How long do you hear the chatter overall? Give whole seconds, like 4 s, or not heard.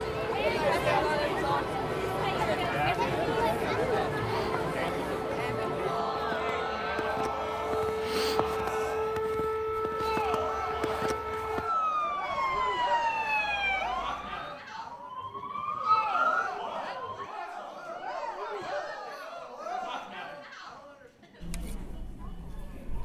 23 s.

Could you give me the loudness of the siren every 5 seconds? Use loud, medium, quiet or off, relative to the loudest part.
medium, loud, loud, loud, off.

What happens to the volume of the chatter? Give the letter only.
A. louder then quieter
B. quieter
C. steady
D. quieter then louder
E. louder
B.